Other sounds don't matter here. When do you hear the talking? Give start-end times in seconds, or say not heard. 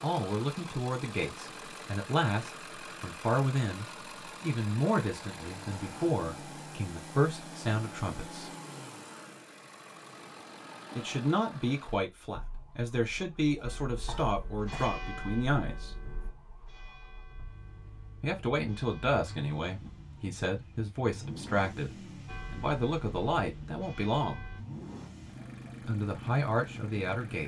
0.0-8.5, 10.9-15.9, 18.2-24.4, 25.8-27.4.